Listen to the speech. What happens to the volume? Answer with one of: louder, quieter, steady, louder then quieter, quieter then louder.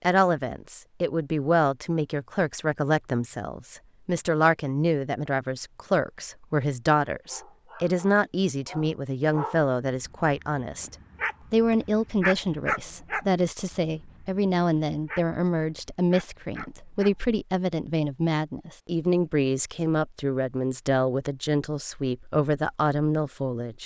steady.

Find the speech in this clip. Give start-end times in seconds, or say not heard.
0.0-23.8.